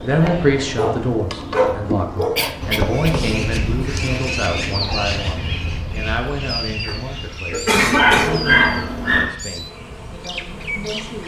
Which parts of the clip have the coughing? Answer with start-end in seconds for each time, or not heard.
1.6-3.1, 6.8-8.5.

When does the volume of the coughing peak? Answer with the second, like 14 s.
8 s.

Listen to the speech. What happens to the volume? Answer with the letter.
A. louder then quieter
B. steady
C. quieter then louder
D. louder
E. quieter
E.